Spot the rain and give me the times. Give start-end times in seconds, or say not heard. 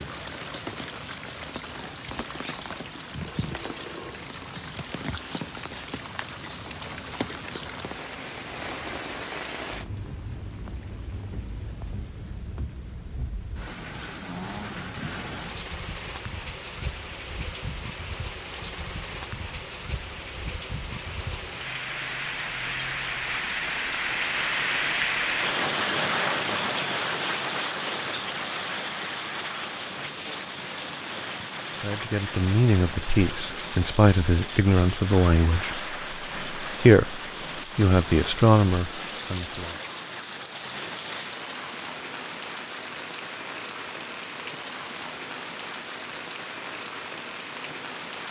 0.0-48.2.